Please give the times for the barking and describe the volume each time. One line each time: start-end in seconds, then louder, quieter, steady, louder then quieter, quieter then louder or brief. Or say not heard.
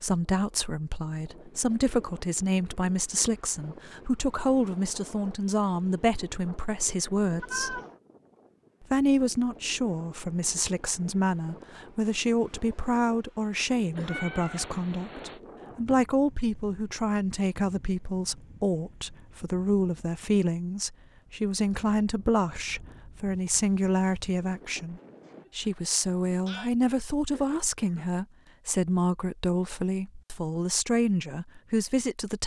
not heard.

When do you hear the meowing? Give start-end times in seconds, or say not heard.
7.4-7.9, 13.9-15.4, 25.4-26.7.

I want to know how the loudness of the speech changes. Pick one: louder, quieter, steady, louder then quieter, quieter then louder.
steady.